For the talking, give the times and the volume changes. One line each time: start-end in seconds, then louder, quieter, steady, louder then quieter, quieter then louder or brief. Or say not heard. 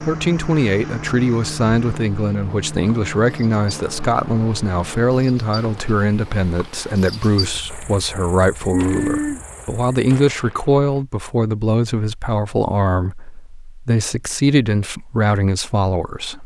0.0-16.4 steady.